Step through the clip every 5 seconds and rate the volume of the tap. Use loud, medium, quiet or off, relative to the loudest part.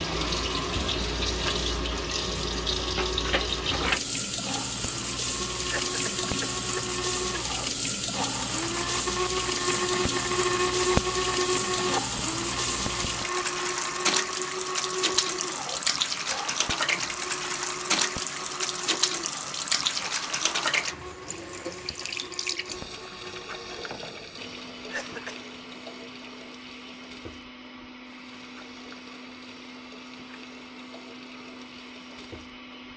loud, loud, loud, loud, medium, quiet, quiet.